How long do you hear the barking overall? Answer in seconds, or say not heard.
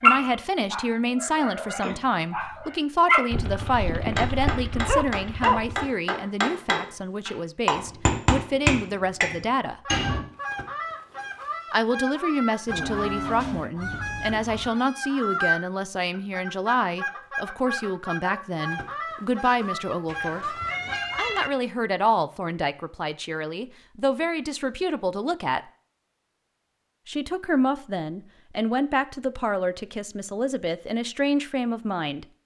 6 s.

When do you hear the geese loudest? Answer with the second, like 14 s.
15 s.